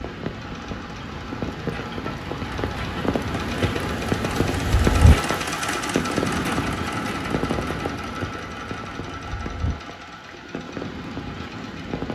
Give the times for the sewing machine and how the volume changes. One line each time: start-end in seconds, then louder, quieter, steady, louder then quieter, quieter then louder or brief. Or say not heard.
0.2-12.0 louder then quieter.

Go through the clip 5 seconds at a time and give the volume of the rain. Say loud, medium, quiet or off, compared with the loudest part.
loud, loud, medium.